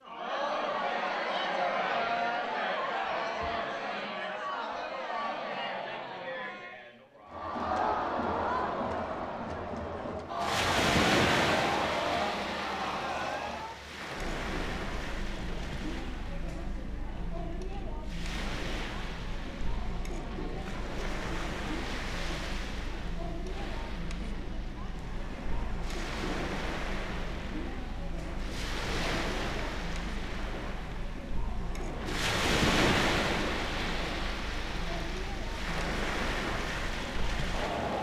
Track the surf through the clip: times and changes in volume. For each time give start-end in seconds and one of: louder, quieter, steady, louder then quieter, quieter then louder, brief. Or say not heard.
10.3-37.9 quieter then louder.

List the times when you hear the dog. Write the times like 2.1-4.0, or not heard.
not heard.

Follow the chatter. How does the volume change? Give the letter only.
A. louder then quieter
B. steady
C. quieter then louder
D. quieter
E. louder
D.